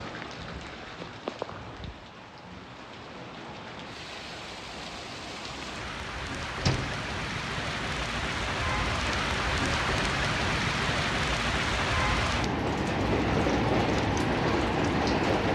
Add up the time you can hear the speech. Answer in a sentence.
You can't hear the speech here.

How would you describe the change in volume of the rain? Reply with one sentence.
The volume of the rain goes up.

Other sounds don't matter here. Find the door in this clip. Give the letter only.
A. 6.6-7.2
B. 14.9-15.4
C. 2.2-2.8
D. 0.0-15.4
A.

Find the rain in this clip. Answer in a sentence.
The rain can be heard from 0.0 to 15.4 s.